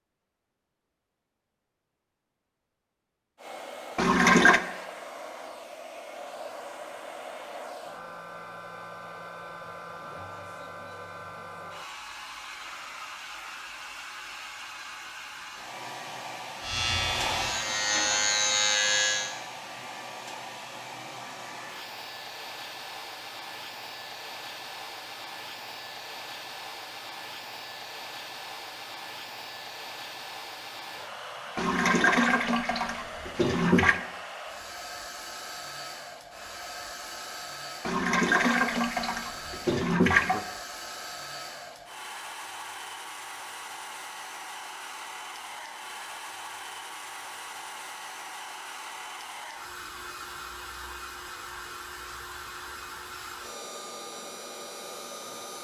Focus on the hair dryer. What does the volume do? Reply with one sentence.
The loudness of the hair dryer stays about the same.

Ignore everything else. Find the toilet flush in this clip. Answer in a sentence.
The toilet flush can be heard from 4.0 to 4.6 s, from 31.6 to 34.0 s and from 37.9 to 40.5 s.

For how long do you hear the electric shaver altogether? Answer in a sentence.
The electric shaver can be heard for 3 seconds in total.